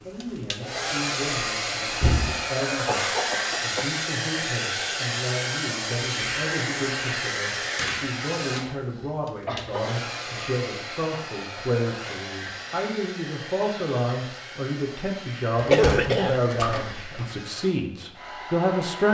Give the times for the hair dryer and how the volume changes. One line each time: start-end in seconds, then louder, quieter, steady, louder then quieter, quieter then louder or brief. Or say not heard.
0.0-19.0 quieter.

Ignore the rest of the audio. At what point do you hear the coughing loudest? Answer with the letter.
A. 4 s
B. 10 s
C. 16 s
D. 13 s
C.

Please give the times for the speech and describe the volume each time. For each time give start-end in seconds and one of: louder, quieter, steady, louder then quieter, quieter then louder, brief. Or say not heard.
0.0-19.0 louder.